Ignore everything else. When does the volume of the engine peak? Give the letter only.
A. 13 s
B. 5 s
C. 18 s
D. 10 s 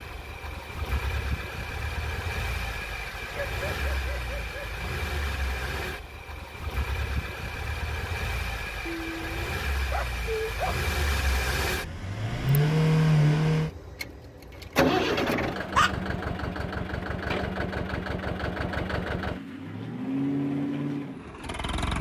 A.